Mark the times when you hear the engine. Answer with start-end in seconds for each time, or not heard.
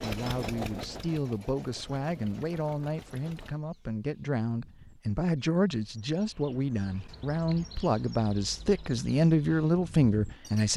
0.0-3.6.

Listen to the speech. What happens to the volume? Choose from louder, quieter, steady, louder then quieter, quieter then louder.
louder.